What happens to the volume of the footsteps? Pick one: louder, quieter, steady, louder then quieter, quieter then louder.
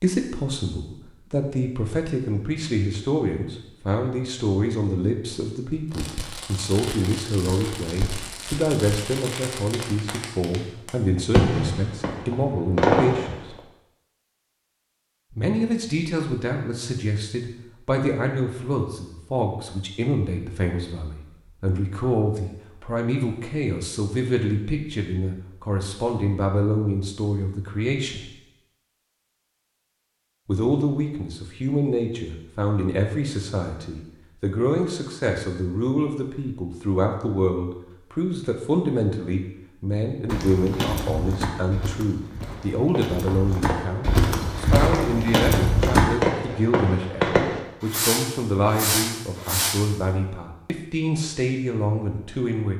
quieter then louder.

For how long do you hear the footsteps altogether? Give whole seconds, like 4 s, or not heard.
6 s.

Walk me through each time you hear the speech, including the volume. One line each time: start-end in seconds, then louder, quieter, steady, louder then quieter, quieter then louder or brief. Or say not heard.
0.0-13.6 steady
15.3-28.3 steady
30.4-52.7 steady.